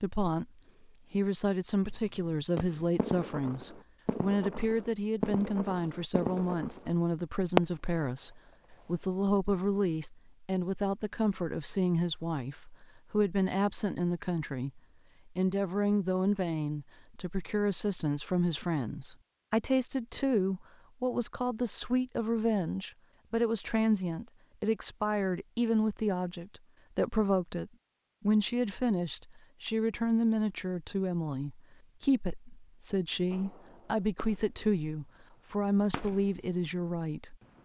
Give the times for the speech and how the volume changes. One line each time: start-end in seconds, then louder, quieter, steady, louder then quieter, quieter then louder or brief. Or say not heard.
0.0-37.4 steady.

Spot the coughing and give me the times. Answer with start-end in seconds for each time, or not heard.
not heard.